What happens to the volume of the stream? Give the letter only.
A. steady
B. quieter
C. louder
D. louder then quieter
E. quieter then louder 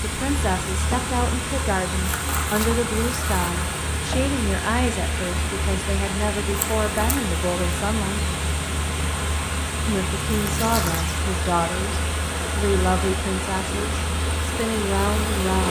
A.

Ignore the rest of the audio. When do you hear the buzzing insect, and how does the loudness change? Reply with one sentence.
You can hear the buzzing insect from 0.0 to 15.6 s, at a steady volume.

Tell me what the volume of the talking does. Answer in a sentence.
The loudness of the talking stays about the same.